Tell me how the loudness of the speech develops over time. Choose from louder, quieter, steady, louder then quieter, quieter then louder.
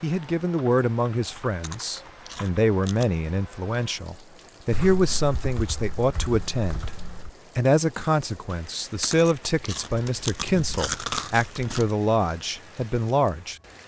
steady.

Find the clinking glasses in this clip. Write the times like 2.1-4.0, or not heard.
not heard.